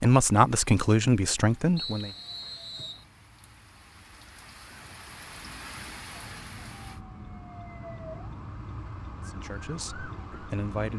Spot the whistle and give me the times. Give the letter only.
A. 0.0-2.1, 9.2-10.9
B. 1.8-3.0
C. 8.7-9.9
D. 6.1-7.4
B.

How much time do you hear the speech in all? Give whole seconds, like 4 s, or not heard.
4 s.